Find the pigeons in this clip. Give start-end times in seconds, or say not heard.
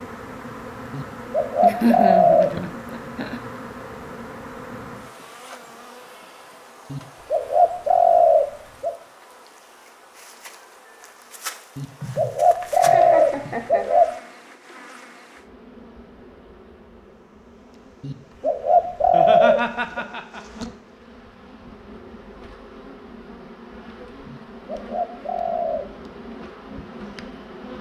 0.9-2.5, 6.9-8.9, 11.8-14.1, 18.0-20.0, 24.2-25.9.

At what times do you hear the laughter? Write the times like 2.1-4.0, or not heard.
1.6-3.4, 12.0-13.8, 19.0-20.6.